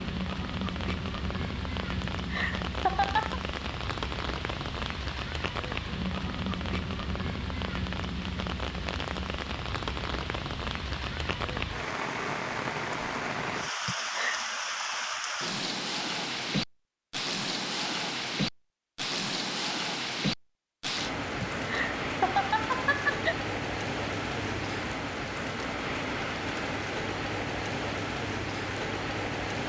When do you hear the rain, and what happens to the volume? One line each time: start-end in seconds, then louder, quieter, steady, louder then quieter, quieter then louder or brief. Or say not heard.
0.0-29.6 steady.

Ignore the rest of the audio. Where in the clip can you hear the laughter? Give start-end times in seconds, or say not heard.
2.0-3.4, 13.8-14.4, 21.4-23.4.